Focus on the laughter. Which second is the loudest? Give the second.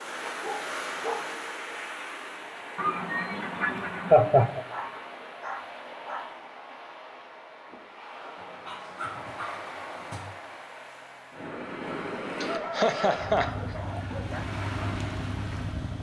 4 s.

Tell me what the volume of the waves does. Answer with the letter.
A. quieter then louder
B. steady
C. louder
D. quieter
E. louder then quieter
A.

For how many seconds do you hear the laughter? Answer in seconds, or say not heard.
3 s.